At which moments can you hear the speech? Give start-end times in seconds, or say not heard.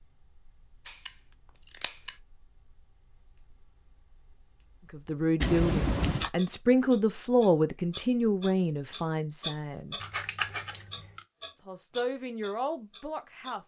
4.9-9.9, 11.6-13.6.